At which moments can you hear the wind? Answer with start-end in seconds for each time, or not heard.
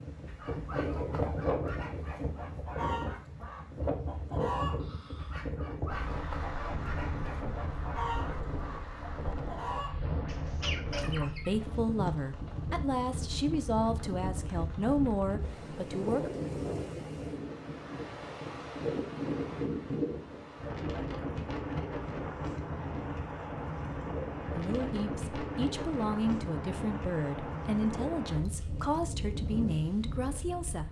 0.0-30.8.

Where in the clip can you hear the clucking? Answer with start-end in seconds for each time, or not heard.
0.2-11.5.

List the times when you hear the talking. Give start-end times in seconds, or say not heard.
11.1-16.3, 24.5-30.8.